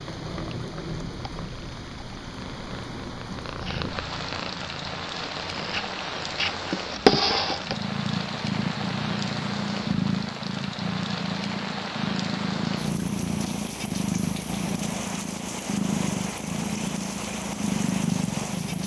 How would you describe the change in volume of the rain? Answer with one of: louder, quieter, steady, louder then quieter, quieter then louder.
steady.